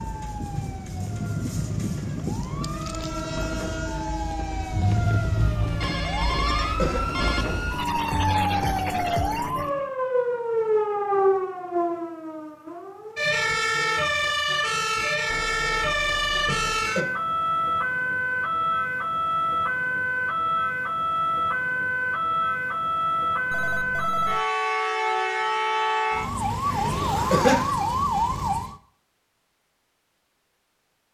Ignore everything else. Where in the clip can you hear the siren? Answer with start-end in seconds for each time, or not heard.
0.0-28.8.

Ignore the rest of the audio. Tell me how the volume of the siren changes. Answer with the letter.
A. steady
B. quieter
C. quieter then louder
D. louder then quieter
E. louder
E.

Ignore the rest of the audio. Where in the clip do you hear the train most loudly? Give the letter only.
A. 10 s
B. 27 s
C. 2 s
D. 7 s
C.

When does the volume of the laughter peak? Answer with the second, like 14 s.
27 s.